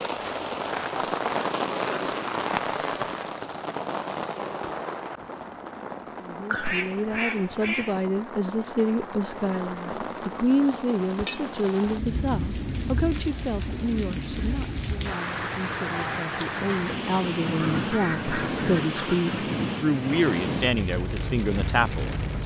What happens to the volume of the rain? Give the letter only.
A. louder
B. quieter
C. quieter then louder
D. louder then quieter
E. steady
C.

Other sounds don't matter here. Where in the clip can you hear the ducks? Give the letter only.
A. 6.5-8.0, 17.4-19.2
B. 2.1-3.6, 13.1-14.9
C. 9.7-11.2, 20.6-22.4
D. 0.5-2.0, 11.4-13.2
A.